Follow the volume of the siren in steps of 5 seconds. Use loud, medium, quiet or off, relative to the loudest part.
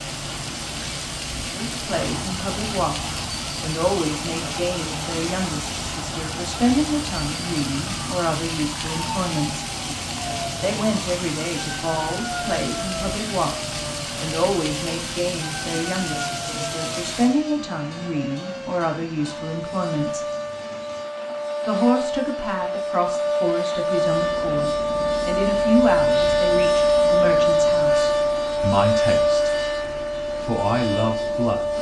quiet, quiet, quiet, quiet, medium, loud, medium.